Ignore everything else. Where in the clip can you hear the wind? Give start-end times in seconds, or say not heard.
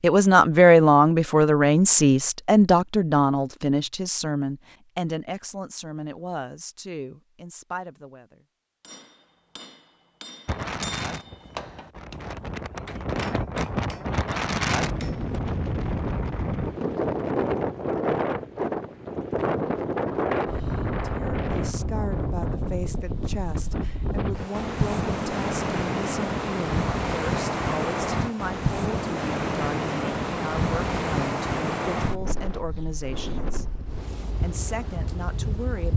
10.4-35.9.